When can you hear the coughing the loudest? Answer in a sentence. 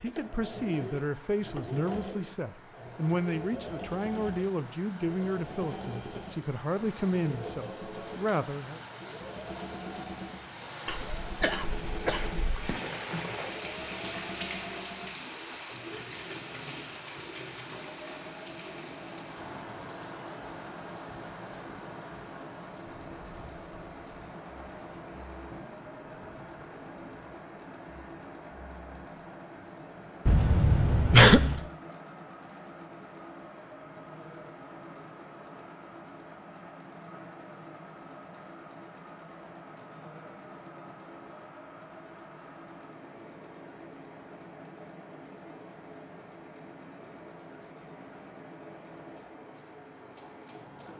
The volume of the coughing peaks at 31 seconds.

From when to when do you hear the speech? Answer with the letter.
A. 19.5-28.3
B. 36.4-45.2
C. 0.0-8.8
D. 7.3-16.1
C.